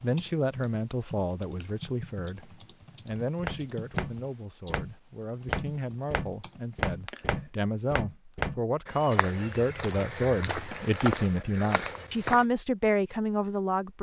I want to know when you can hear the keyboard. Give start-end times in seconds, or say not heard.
0.0-7.5.